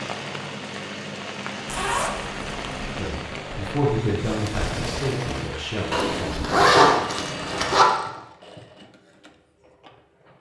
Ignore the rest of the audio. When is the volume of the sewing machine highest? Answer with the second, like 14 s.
5 s.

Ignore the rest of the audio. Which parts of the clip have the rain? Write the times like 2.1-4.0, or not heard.
0.0-6.5.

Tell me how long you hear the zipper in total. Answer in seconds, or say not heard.
3 s.